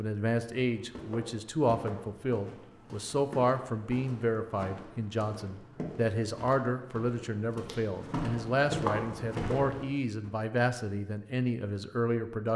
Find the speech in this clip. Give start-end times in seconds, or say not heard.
0.0-12.5.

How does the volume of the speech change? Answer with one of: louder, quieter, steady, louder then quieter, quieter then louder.
steady.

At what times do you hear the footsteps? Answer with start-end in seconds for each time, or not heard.
0.7-10.3.